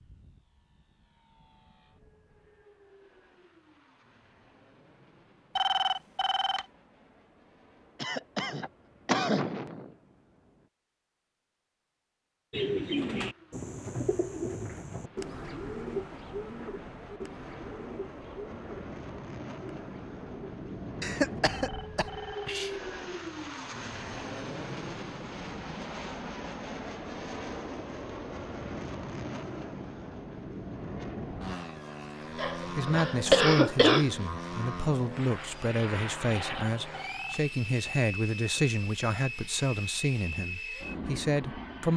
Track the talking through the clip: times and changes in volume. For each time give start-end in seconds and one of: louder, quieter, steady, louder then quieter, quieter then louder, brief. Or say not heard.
32.5-41.9 steady.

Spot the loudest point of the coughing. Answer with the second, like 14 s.
33 s.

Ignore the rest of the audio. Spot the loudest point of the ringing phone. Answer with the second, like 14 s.
6 s.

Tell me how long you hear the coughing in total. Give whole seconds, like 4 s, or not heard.
5 s.